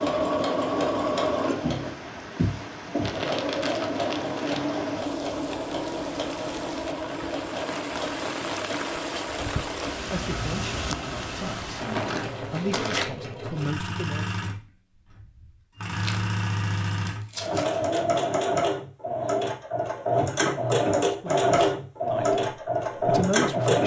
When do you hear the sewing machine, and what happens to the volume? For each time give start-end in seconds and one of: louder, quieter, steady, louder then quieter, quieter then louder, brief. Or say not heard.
0.0-23.8 quieter then louder.